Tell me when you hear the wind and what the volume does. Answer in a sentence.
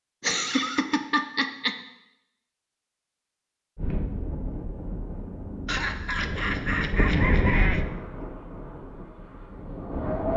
You can hear the wind from 3.8 to 10.3 s, getting louder then quieter.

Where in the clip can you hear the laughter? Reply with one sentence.
The laughter can be heard from 0.2 to 1.8 s and from 5.7 to 7.8 s.